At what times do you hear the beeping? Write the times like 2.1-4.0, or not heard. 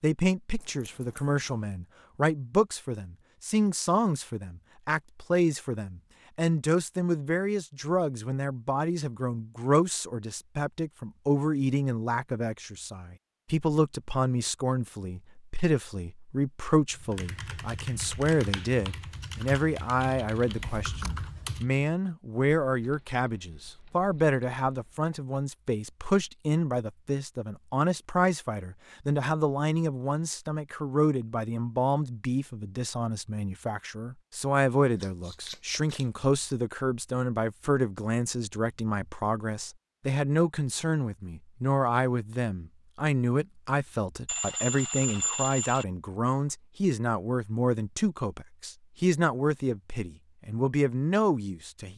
44.2-45.9.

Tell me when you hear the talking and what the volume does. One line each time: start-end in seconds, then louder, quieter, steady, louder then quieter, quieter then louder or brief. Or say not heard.
0.0-51.9 steady.